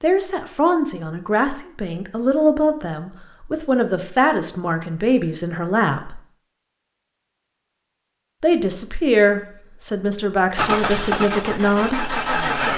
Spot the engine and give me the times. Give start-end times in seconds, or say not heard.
10.6-12.7.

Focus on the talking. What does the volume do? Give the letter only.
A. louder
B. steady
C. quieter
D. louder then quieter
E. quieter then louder
B.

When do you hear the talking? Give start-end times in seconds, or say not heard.
0.0-6.2, 8.4-12.2.